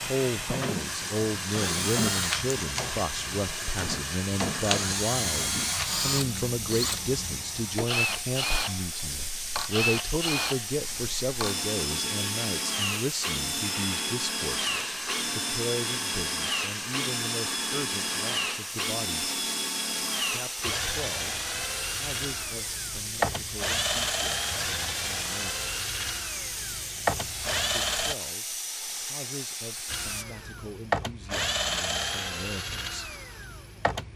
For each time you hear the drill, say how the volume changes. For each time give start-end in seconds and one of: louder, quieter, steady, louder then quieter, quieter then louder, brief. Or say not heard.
0.0-28.1 steady
29.9-34.1 quieter.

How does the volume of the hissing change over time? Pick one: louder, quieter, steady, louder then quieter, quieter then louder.
steady.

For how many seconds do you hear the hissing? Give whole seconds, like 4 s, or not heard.
30 s.